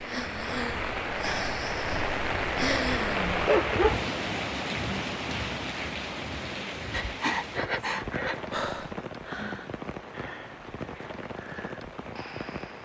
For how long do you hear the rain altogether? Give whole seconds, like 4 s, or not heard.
13 s.